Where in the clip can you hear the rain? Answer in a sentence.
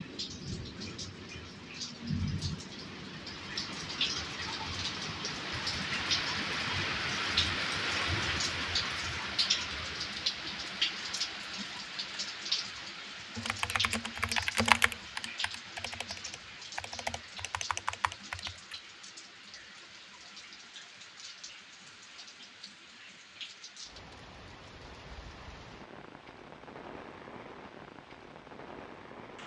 You can hear the rain from 0.0 to 29.4 s.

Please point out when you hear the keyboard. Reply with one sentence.
The keyboard can be heard from 13.3 to 18.8 s.